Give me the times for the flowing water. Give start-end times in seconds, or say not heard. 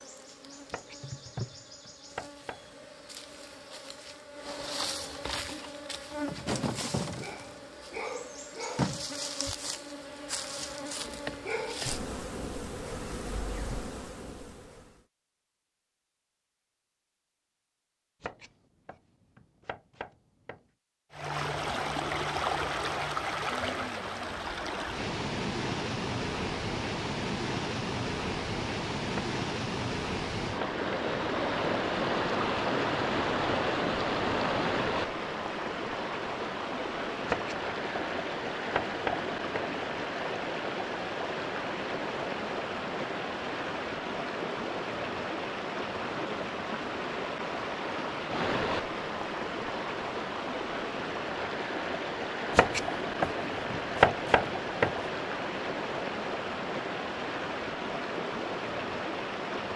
21.1-59.7.